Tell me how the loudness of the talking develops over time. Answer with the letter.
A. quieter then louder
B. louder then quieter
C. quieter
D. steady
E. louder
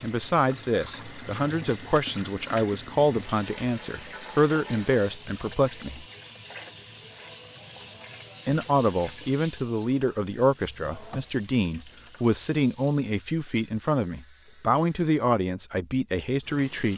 D.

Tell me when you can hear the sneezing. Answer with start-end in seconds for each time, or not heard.
not heard.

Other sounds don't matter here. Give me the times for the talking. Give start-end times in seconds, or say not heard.
0.0-6.0, 8.4-16.9.